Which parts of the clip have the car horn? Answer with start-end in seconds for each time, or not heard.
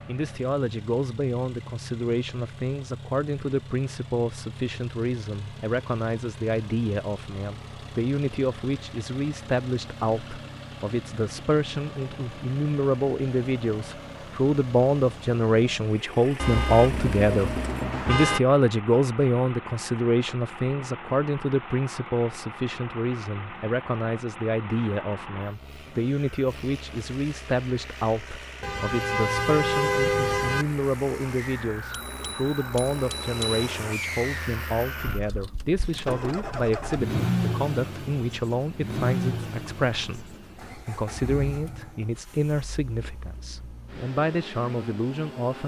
16.4-18.4, 28.6-30.6.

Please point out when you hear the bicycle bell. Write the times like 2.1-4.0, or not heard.
31.9-33.6.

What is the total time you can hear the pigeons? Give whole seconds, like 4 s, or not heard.
not heard.